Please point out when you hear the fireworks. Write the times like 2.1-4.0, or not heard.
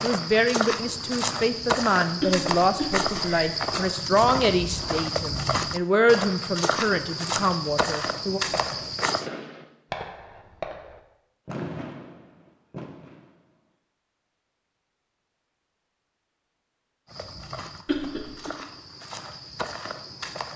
8.5-13.8.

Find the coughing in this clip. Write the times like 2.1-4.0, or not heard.
2.2-3.5, 17.9-18.5.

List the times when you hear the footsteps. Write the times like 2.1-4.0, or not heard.
0.0-9.3, 17.1-20.5.